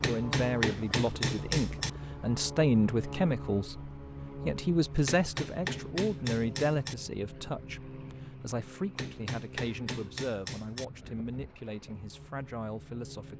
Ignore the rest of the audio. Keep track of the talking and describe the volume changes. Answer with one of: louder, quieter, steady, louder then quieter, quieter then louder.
quieter.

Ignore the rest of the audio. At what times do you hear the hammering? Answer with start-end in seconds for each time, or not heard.
0.0-1.9, 5.0-7.0, 8.9-10.8.